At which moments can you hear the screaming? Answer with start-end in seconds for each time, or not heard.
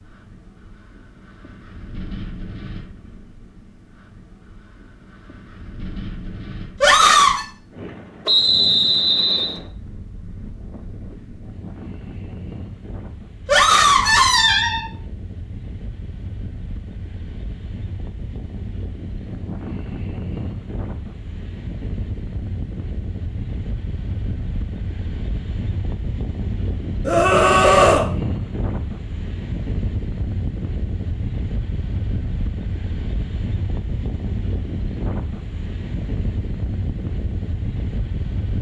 6.8-7.5, 13.4-14.8, 27.1-28.1.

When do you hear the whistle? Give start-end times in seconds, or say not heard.
8.2-9.6.